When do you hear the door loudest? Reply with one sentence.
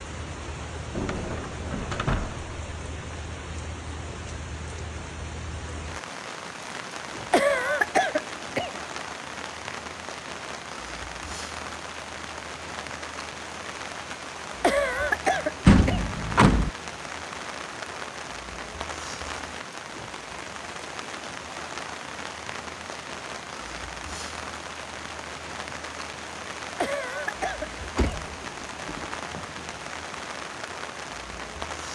The loudest moment of the door is at 16 seconds.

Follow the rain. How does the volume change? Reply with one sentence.
The volume of the rain stays about the same.